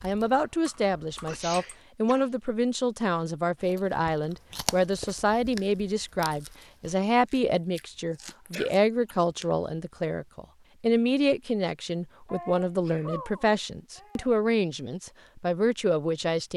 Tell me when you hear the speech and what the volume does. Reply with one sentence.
The speech can be heard from 0.0 to 16.5 s, at a steady volume.